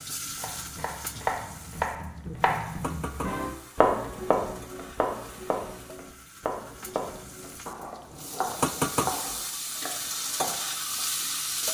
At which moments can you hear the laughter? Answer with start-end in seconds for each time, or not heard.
not heard.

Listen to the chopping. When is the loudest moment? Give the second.
4 s.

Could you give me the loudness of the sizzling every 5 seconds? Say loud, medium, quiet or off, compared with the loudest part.
medium, loud, loud.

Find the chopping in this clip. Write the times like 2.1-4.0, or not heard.
0.3-11.0.